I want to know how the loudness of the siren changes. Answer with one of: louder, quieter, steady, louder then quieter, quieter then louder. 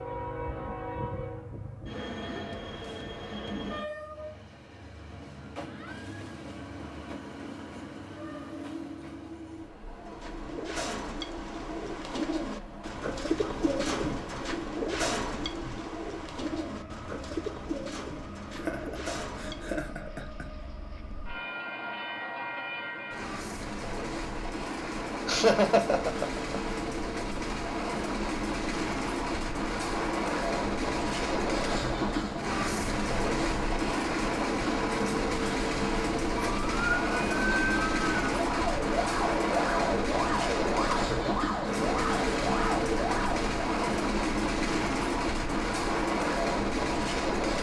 steady.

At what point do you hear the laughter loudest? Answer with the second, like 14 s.
26 s.